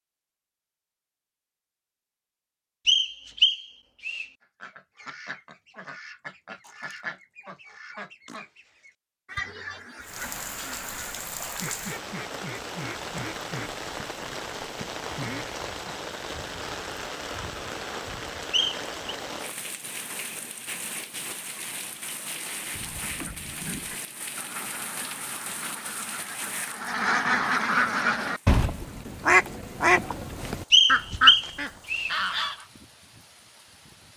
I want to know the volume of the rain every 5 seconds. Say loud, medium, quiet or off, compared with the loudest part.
off, off, loud, loud, loud, medium, quiet.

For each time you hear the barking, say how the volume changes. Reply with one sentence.
The barking can't be heard in this clip.